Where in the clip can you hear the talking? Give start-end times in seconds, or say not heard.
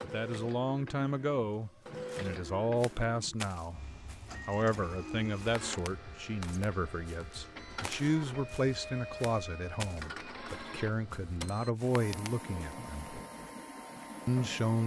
0.0-3.8, 4.5-13.2, 14.2-14.8.